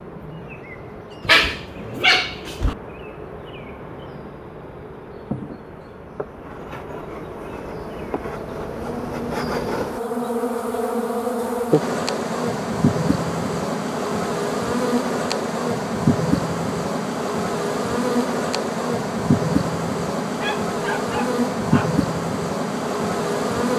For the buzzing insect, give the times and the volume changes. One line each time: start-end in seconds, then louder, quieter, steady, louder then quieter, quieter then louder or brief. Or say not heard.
0.0-23.7 louder.